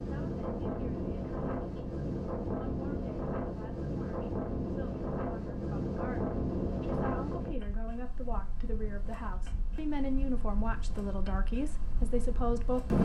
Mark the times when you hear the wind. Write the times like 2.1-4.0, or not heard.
0.0-12.9.